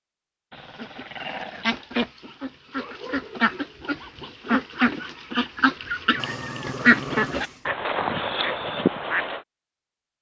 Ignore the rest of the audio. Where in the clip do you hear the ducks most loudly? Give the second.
7 s.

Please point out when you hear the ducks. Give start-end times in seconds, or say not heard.
0.8-9.4.